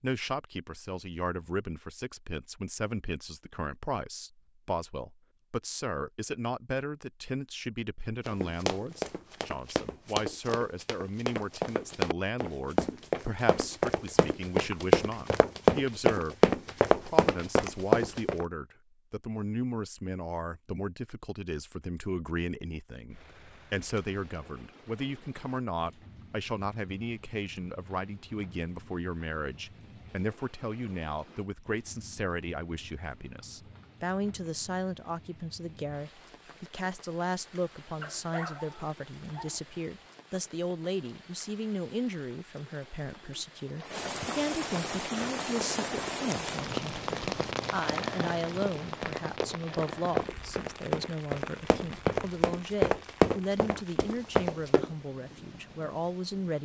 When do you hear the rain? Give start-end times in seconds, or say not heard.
23.1-56.6.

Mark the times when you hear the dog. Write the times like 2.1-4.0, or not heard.
38.0-39.8.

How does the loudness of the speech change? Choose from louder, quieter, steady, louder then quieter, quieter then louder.
steady.